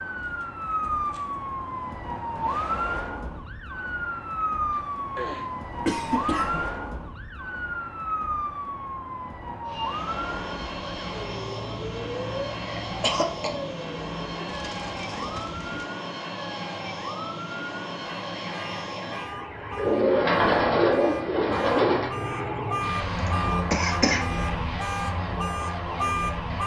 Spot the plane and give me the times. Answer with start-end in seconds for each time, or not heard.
9.7-26.6.